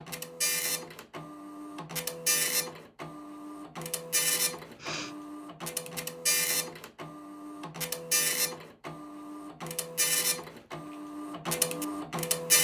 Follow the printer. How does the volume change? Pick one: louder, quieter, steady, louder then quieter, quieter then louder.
steady.